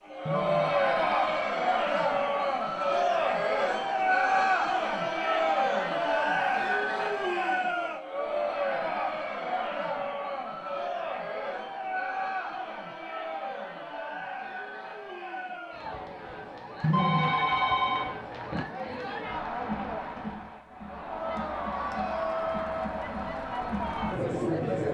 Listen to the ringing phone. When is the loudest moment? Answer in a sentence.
The volume of the ringing phone peaks at 17 seconds.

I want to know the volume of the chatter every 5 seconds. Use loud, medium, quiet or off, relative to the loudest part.
loud, loud, medium, medium, medium.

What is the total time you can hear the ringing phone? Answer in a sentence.
The ringing phone can be heard for 3 seconds in total.